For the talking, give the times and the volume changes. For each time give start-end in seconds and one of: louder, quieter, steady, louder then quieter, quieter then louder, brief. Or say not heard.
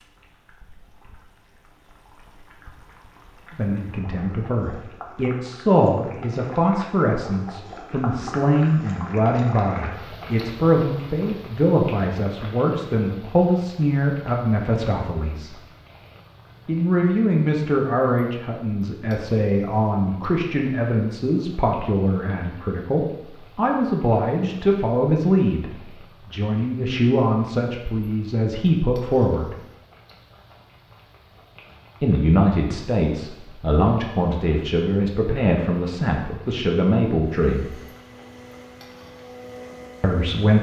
3.5-15.6 steady
16.6-29.6 steady
32.0-37.8 steady
40.0-40.5 brief.